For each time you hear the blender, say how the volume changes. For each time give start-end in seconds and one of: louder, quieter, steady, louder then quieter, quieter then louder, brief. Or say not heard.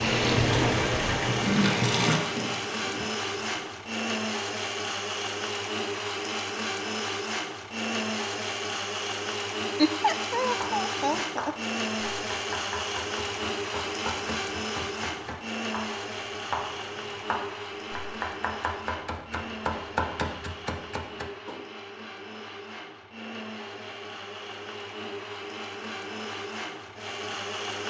0.0-27.8 quieter.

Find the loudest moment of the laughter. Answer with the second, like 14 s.
10 s.